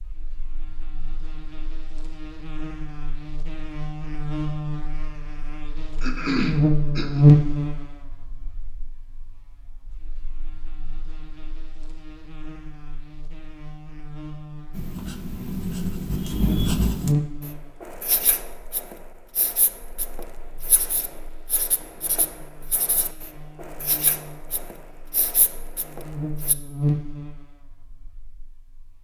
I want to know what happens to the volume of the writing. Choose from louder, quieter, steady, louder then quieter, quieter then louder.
quieter.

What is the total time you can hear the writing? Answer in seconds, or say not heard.
12 s.